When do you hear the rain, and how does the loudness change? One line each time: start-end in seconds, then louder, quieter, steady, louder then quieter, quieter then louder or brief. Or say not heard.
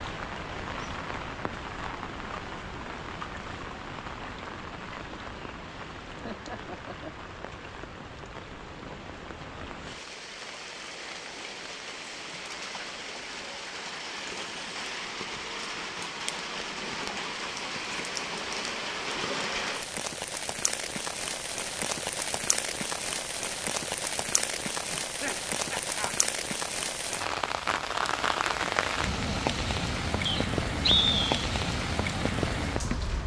0.0-33.2 louder.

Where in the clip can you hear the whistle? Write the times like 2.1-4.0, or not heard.
30.2-31.4.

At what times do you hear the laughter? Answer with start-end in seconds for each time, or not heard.
6.1-7.3, 25.0-26.1.